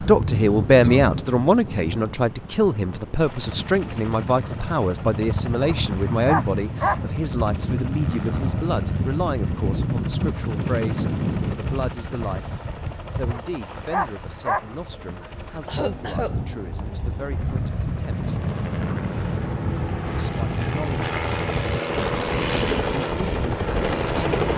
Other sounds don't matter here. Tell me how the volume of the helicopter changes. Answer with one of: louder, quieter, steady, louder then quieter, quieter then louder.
louder.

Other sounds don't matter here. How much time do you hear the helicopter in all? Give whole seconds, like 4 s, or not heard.
21 s.